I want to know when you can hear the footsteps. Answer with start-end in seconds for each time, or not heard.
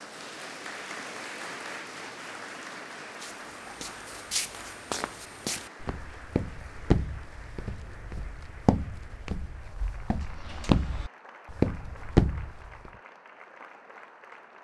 3.2-12.9.